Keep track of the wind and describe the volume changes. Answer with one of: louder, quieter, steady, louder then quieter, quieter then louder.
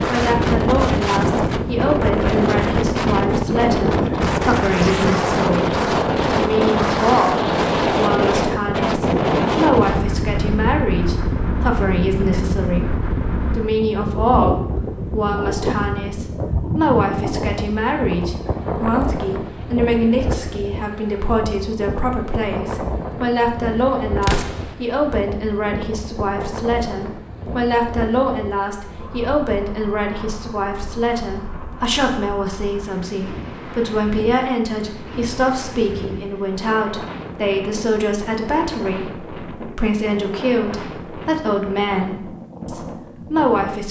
quieter.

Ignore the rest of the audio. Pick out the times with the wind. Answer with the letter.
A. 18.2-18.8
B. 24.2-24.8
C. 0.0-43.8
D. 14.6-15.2
C.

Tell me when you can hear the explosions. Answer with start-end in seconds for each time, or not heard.
24.2-24.8.